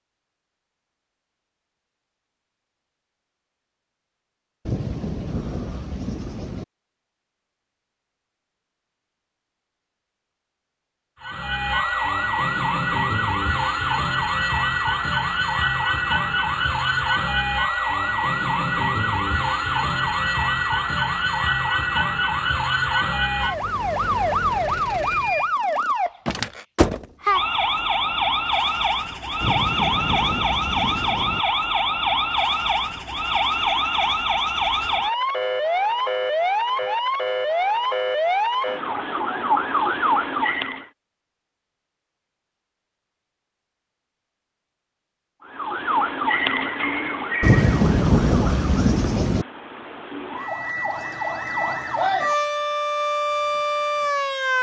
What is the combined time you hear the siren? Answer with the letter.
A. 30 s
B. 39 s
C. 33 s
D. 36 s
B.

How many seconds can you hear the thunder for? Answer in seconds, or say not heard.
6 s.